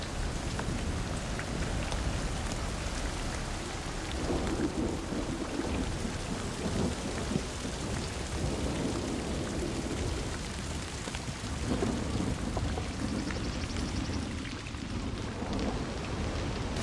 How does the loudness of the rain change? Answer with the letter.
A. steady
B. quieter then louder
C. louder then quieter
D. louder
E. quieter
A.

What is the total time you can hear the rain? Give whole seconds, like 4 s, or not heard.
17 s.